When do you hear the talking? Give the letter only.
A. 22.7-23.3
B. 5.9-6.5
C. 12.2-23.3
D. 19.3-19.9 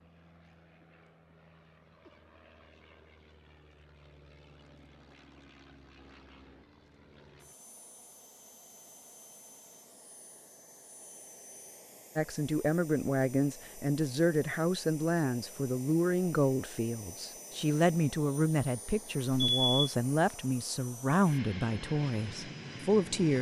C.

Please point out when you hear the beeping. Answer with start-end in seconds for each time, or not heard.
19.3-19.9.